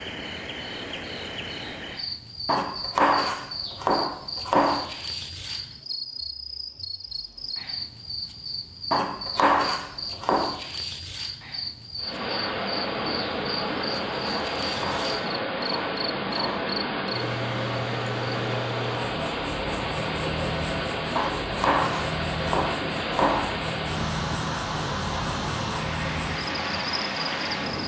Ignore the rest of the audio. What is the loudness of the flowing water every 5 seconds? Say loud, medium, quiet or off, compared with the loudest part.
off, off, loud, loud, loud, loud.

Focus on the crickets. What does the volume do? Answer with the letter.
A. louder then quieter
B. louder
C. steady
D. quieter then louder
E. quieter
C.